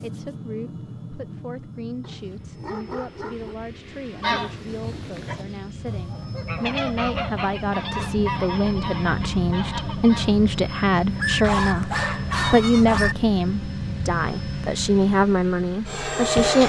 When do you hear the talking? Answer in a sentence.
The talking can be heard from 0.0 to 16.6 s.